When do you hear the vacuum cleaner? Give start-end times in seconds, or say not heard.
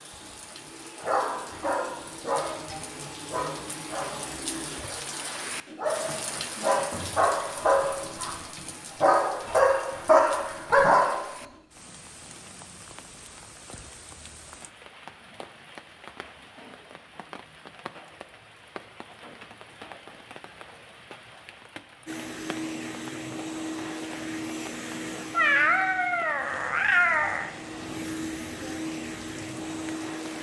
0.0-9.7, 22.1-30.3.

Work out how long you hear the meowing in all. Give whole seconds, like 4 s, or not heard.
2 s.